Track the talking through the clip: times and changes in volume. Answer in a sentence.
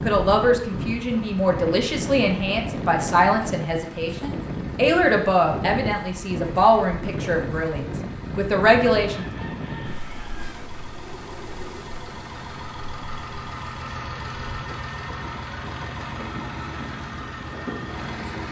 The talking can be heard from 0.0 to 9.2 s, at a steady volume.